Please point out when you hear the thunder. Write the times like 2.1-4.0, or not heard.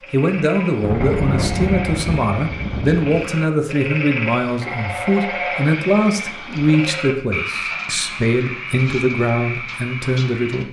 0.3-3.2.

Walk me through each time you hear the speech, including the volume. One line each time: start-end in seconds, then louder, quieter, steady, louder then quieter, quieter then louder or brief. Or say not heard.
0.1-10.6 steady.